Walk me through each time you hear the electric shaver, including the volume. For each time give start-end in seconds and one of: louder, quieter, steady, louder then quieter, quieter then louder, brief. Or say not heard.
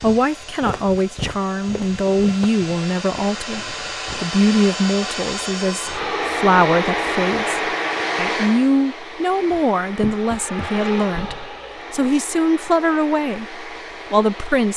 not heard.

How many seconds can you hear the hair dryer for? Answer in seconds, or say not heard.
15 s.